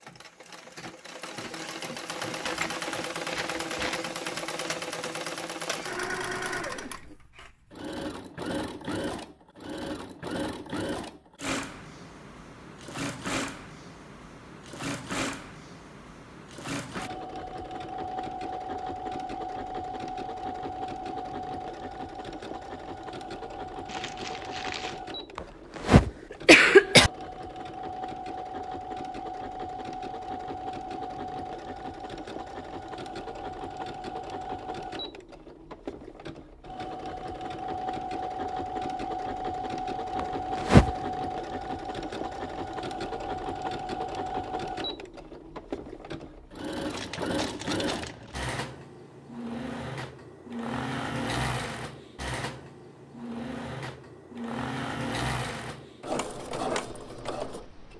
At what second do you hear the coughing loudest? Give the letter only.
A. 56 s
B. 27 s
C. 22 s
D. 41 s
B.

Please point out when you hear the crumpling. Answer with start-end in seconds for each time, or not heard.
2.3-4.0, 23.9-25.0, 46.9-48.4.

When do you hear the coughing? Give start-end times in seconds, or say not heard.
25.4-27.1, 40.1-40.9.